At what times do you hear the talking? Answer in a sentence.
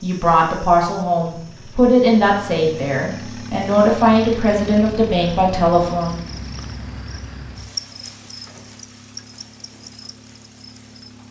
The talking can be heard from 0.0 to 6.2 s.